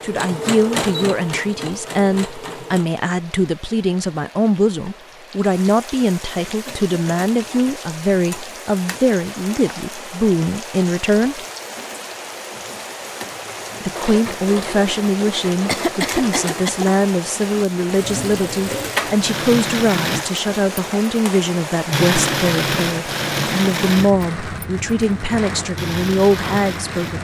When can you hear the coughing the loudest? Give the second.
16 s.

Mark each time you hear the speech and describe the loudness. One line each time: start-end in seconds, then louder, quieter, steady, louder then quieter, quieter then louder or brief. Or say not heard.
0.0-11.4 steady
13.8-27.1 steady.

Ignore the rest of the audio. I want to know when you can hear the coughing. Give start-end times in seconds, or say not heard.
6.5-7.8, 15.7-16.9.